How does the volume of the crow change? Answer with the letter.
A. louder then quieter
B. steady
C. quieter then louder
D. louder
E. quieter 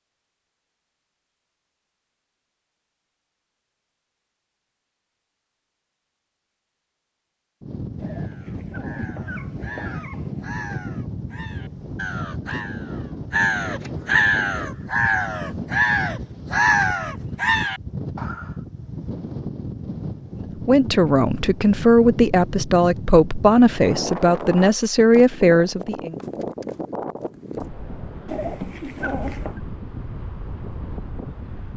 D.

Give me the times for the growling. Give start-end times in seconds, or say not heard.
8.0-10.5, 28.2-29.6.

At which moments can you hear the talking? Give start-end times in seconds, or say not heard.
20.4-26.1.